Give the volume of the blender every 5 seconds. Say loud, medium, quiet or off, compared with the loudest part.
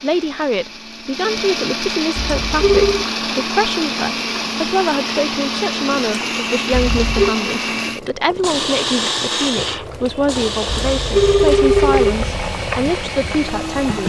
loud, loud, medium.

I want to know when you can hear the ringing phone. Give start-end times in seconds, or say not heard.
2.1-3.0, 6.7-7.3, 10.7-12.2.